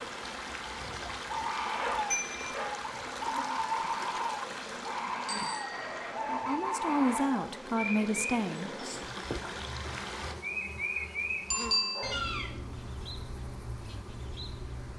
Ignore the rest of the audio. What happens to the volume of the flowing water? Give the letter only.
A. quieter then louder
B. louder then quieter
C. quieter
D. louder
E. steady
A.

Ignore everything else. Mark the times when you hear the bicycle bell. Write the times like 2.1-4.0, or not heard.
2.1-2.6, 5.2-6.1, 11.5-12.1.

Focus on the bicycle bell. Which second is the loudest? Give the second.
12 s.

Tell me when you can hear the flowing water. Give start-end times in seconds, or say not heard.
0.0-10.3.